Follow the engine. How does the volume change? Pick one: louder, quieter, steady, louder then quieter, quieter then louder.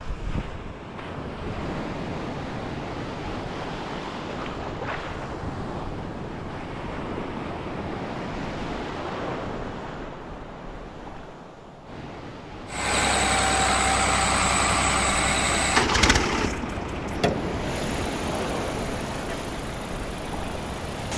quieter.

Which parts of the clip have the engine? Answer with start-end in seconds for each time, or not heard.
12.7-21.1.